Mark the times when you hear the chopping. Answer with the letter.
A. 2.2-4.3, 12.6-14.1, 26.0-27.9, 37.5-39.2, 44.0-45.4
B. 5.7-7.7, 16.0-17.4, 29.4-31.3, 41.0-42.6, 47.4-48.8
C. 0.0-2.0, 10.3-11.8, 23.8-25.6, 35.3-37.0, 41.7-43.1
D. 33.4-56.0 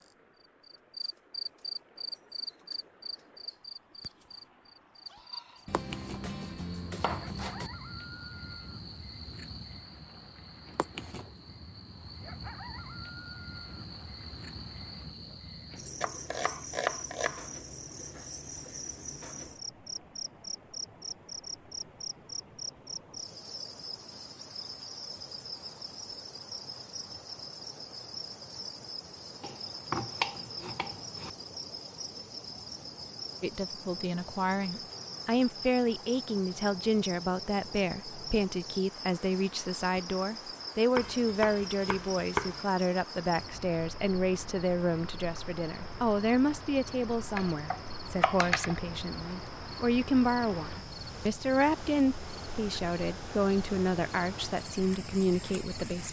B.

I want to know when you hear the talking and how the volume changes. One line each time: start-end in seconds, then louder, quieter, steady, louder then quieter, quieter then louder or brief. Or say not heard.
33.4-56.0 steady.